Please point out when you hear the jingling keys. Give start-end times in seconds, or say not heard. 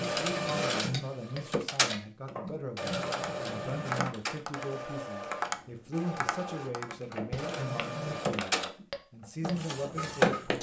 not heard.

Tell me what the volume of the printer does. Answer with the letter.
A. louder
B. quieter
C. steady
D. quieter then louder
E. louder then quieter
D.